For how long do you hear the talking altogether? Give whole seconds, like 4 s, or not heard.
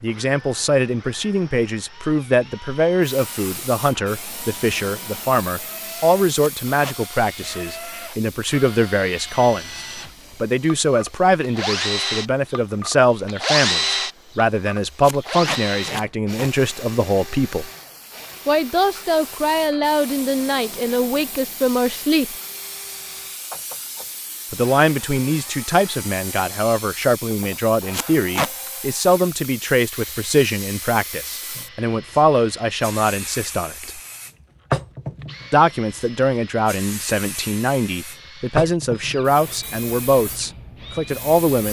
37 s.